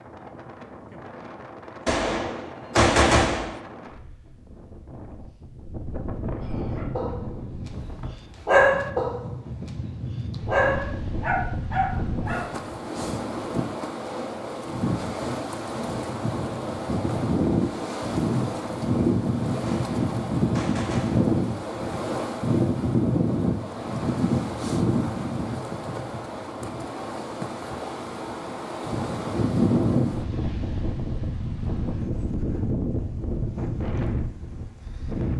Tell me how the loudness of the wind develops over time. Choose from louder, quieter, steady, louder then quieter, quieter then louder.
louder.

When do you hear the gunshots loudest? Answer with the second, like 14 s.
3 s.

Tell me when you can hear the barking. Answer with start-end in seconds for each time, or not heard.
6.8-12.7.